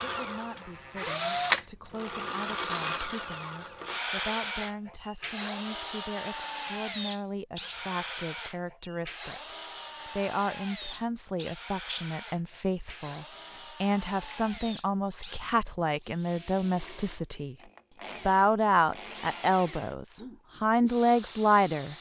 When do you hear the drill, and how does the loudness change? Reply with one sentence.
You can hear the drill from 0.0 to 21.9 s, getting quieter.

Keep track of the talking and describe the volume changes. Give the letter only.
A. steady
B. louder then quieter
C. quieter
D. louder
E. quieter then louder
D.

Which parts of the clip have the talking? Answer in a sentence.
You can hear the talking from 0.0 to 17.6 s and from 18.2 to 21.9 s.